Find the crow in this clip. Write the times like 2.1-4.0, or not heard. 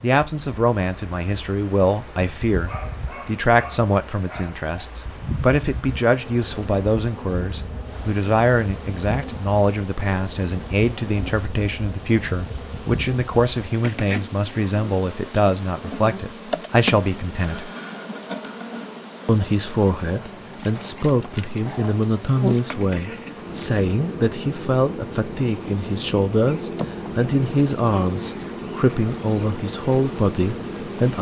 not heard.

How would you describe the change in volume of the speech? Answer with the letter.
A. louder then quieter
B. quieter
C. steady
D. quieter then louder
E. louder
C.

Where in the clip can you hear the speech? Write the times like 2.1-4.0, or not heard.
0.0-17.7, 19.2-31.1.